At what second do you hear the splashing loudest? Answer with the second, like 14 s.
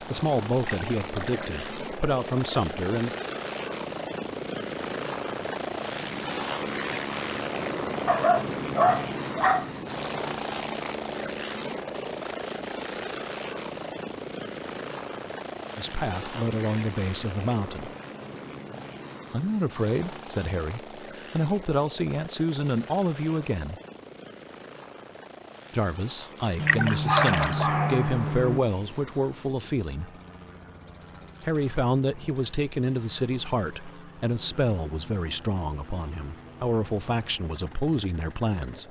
27 s.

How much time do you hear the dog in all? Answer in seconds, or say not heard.
4 s.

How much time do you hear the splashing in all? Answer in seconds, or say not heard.
2 s.